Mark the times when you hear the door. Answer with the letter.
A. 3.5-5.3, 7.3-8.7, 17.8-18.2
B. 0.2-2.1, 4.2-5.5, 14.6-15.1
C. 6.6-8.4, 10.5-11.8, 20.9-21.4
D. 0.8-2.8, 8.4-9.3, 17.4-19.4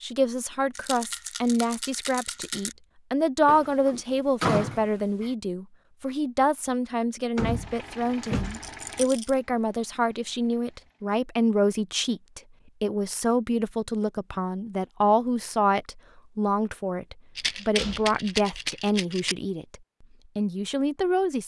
A.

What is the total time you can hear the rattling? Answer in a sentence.
You can hear the rattling for 5 seconds altogether.